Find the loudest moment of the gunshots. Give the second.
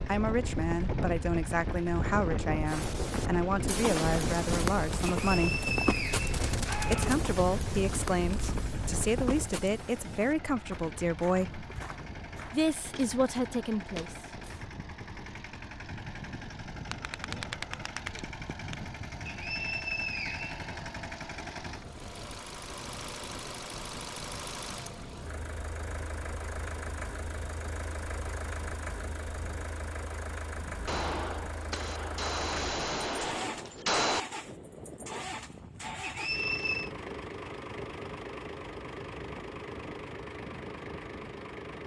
34 s.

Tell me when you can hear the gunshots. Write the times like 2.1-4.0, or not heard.
6.2-7.2, 16.9-18.8, 30.9-34.2.